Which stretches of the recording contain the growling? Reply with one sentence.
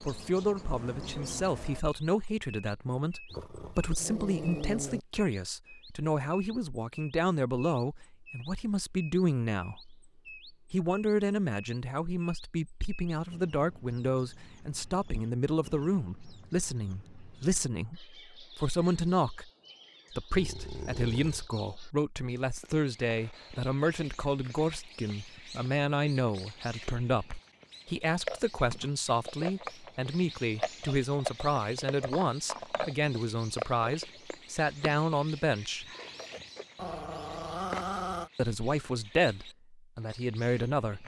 The growling can be heard from 3.3 to 5.0 s, from 20.3 to 21.5 s and from 36.8 to 38.3 s.